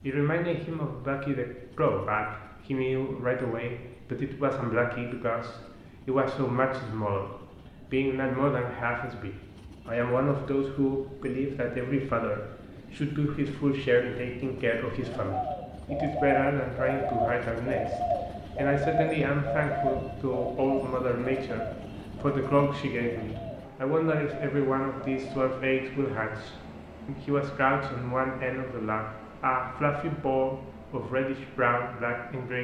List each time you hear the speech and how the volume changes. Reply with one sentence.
The speech can be heard from 0.0 to 32.5 s, at a steady volume.